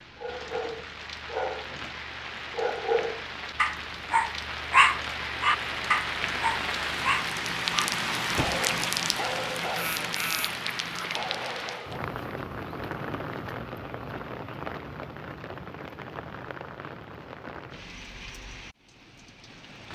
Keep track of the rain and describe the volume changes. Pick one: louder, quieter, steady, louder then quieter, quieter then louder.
louder then quieter.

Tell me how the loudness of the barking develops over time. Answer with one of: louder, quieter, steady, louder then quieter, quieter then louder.
louder then quieter.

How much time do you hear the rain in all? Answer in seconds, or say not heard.
20 s.